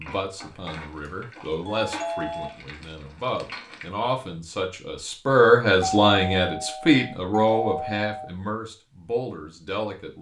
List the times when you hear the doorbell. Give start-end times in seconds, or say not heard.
1.1-2.5, 5.8-8.3.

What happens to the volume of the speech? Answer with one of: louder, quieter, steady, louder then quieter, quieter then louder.
louder then quieter.